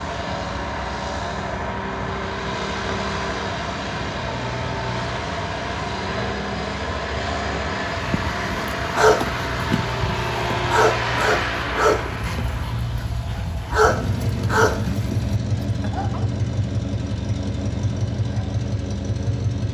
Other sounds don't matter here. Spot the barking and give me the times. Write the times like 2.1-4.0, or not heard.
8.0-16.2.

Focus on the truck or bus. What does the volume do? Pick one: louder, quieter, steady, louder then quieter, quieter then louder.
steady.